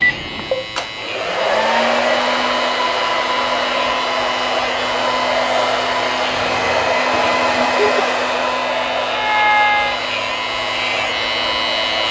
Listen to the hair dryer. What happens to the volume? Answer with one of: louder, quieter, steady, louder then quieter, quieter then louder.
steady.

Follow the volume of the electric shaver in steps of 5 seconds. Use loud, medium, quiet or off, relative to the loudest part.
medium, medium, loud.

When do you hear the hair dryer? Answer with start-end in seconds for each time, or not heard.
0.0-12.0.